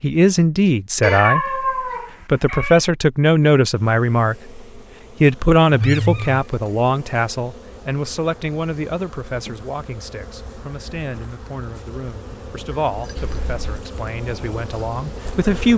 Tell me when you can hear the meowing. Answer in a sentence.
The meowing can be heard from 1.0 to 2.8 s, from 5.7 to 6.5 s and from 13.2 to 13.8 s.